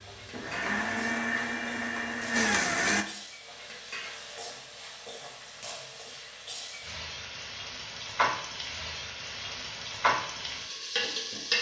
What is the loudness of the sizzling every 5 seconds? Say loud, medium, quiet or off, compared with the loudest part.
quiet, medium, loud.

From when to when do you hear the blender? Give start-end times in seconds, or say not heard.
0.0-3.0.